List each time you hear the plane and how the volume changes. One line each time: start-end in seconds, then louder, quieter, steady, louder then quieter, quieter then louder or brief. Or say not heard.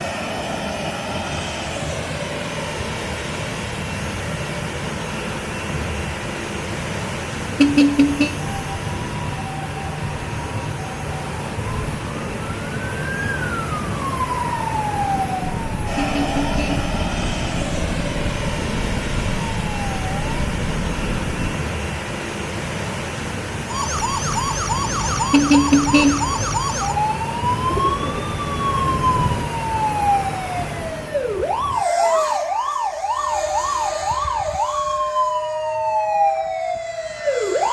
0.0-37.6 steady.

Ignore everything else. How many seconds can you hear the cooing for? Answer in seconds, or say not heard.
2 s.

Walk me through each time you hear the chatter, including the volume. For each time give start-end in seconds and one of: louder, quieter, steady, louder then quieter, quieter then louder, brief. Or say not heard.
not heard.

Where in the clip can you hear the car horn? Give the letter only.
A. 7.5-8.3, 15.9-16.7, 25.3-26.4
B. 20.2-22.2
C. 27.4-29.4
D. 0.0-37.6
A.